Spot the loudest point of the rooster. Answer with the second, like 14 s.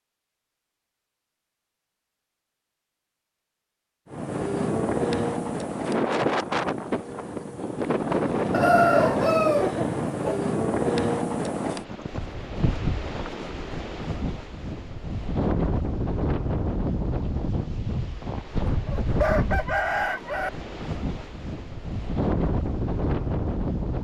9 s.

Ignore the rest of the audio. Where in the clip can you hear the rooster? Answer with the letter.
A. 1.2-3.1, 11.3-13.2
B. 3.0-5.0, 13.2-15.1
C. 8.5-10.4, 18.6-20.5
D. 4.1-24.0
C.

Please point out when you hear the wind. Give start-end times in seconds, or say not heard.
4.1-24.0.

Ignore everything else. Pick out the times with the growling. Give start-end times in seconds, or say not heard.
not heard.